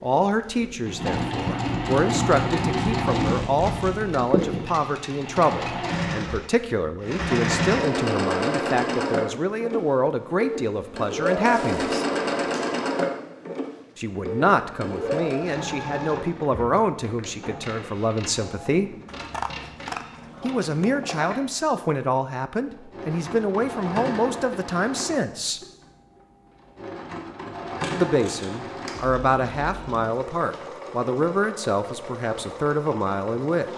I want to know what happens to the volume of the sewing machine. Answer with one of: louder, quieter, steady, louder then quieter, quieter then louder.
quieter.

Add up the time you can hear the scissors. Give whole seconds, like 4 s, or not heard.
2 s.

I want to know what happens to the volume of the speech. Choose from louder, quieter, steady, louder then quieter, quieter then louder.
steady.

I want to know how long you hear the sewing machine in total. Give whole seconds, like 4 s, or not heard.
34 s.